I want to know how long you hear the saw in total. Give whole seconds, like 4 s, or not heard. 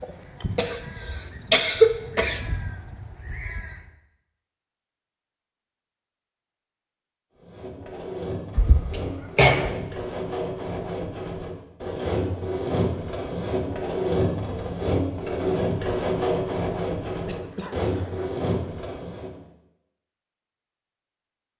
12 s.